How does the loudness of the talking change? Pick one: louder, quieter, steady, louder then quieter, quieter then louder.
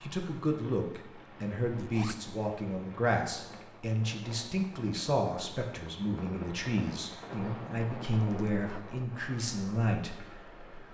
steady.